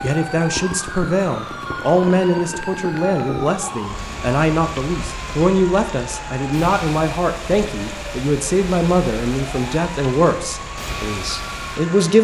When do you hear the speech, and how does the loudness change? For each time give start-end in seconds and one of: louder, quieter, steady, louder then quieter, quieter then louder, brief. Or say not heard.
0.0-12.1 steady.